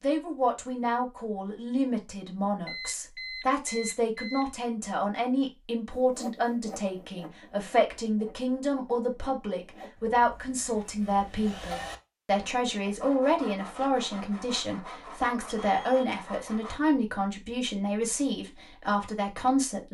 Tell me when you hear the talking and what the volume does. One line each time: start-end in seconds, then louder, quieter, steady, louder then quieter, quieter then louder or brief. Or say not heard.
0.0-19.8 steady.